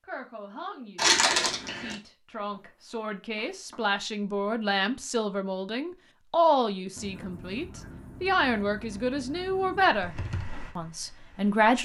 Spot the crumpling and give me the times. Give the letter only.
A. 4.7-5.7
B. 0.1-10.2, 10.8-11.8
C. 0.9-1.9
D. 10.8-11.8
C.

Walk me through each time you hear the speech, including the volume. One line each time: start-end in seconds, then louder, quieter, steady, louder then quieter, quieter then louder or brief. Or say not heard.
0.1-10.2 louder
10.8-11.8 brief.